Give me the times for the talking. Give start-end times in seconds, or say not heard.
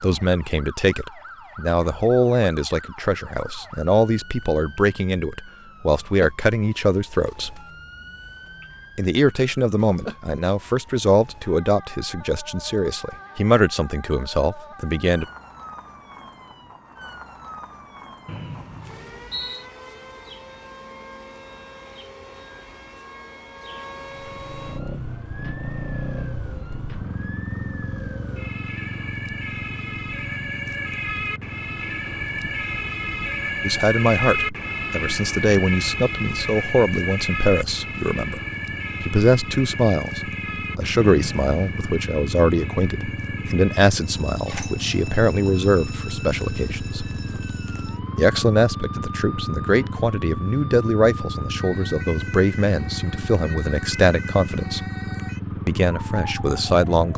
0.0-7.6, 8.9-15.2, 33.6-38.4, 39.0-47.0, 48.1-54.9, 55.6-57.1.